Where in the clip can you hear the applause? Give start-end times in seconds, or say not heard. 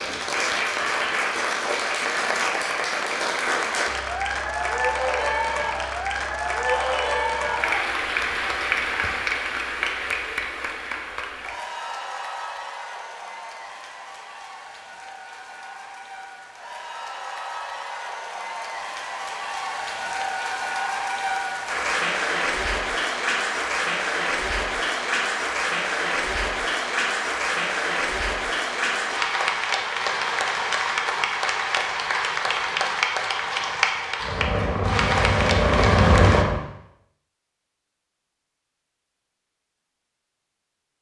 0.0-36.5.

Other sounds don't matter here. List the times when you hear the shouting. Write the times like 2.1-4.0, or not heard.
6.7-8.0.